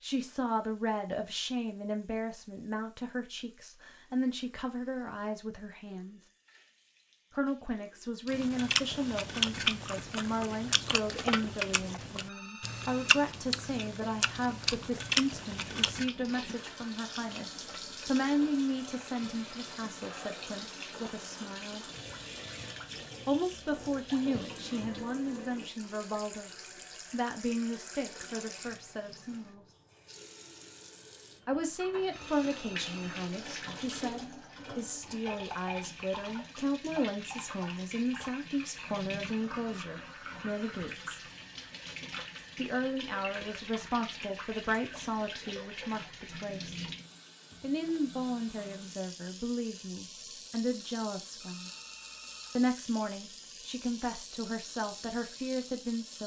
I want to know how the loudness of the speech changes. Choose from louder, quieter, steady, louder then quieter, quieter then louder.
steady.